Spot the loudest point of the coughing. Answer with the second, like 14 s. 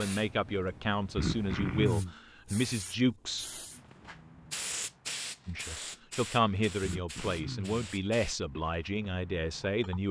2 s.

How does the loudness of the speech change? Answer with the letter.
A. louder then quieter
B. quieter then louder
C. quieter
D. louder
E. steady
E.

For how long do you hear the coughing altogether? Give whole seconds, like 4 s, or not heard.
2 s.